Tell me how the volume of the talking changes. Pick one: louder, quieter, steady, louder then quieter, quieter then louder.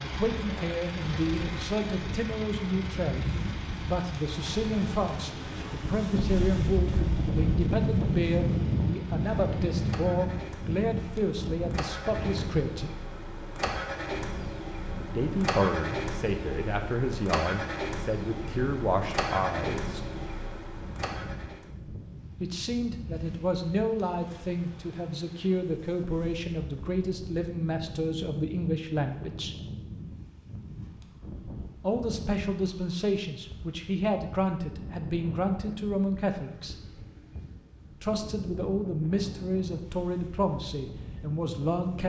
steady.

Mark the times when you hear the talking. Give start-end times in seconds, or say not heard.
0.0-12.9, 15.2-20.1, 22.4-29.6, 31.8-36.8, 38.0-42.0.